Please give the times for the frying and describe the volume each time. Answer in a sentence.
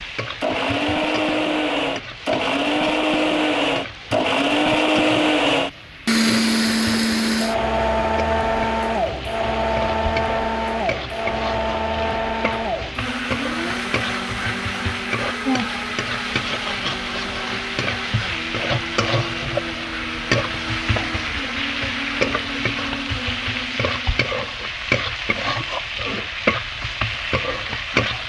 The frying can be heard from 0.0 to 28.2 s, getting louder.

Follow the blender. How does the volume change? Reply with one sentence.
The volume of the blender goes down.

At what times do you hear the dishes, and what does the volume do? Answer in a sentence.
You can't hear the dishes here.